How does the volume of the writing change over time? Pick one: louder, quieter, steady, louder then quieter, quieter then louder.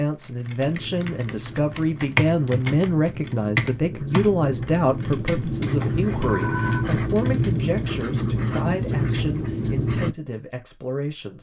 louder.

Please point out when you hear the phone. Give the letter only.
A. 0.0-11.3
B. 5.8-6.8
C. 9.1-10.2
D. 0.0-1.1
B.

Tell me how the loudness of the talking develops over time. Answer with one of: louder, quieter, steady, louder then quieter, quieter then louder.
quieter.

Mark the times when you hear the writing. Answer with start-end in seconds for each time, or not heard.
0.6-10.2.